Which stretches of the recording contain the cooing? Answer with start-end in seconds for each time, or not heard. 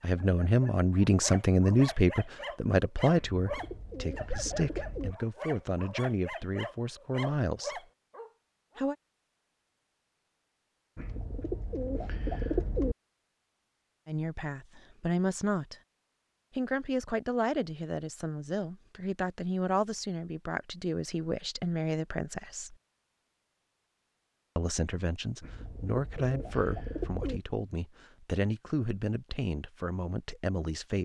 3.1-5.2, 10.9-12.9, 25.4-27.4.